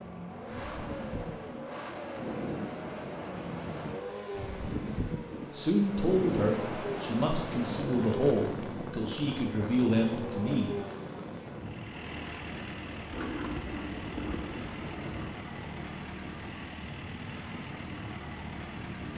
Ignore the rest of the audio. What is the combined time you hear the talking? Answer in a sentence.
The talking can be heard for 5 seconds in total.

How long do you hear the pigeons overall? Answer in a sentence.
The pigeons can be heard for 2 seconds in total.